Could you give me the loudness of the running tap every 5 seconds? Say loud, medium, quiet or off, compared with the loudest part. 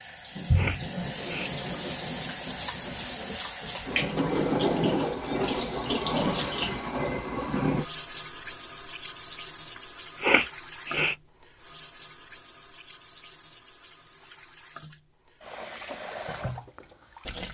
loud, loud, quiet, medium.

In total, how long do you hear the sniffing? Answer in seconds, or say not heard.
2 s.